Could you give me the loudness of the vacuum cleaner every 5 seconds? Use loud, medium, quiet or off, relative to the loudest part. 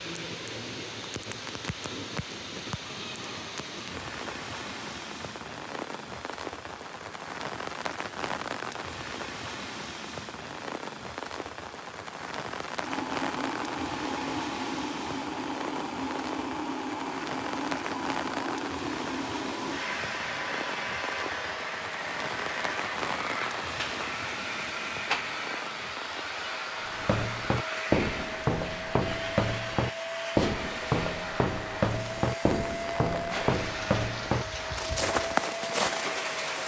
off, off, loud, loud, loud, loud, loud, loud.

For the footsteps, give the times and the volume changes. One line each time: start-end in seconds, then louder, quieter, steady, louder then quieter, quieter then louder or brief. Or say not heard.
26.9-36.1 steady.